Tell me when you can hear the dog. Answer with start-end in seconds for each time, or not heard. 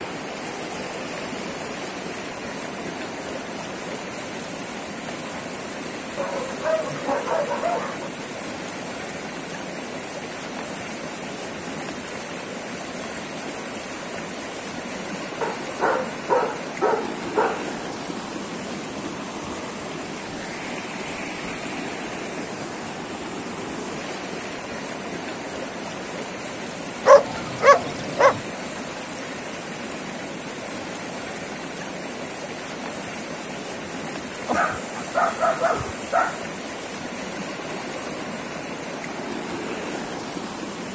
6.2-8.1, 15.4-17.6, 27.1-28.4, 34.5-36.4.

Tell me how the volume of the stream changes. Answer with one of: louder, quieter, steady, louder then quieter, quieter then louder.
steady.